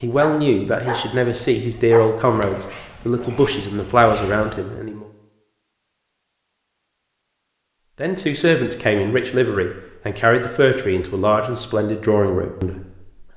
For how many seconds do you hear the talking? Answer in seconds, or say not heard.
10 s.